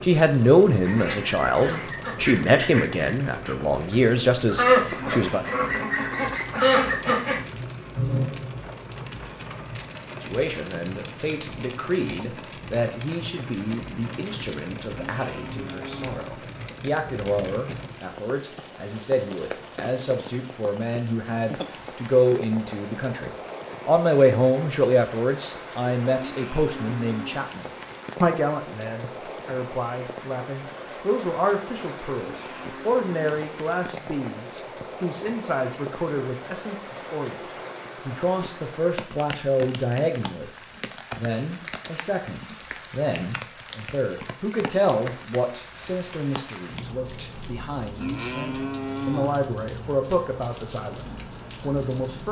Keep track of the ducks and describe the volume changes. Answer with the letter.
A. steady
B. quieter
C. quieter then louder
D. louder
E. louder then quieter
D.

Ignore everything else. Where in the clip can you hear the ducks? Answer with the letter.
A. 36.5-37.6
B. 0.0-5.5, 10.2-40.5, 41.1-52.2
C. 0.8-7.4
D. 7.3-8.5
C.